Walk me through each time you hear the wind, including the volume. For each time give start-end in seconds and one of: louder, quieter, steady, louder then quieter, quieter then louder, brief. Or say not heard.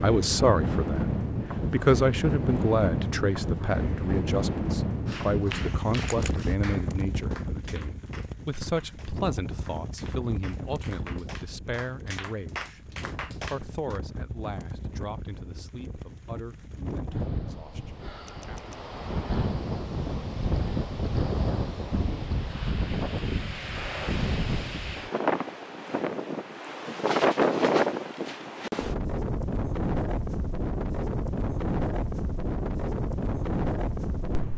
0.0-34.5 quieter then louder.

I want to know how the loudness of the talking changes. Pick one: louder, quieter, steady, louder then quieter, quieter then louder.
quieter.